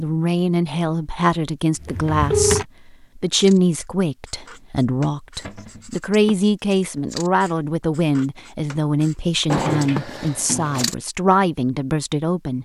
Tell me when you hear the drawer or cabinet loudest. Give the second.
10 s.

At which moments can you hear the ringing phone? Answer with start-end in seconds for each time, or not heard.
1.9-2.6.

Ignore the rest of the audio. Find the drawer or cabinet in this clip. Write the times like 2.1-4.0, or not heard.
1.8-2.6, 5.4-5.9, 9.4-10.8.